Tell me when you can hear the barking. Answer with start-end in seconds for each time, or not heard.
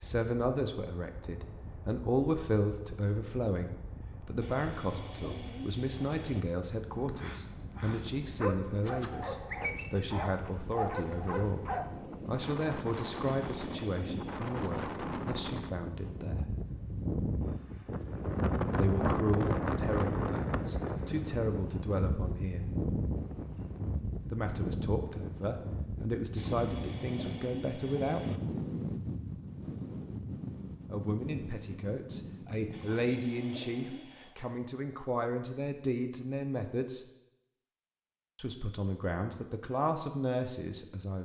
6.9-11.9.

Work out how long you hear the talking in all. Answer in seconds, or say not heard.
34 s.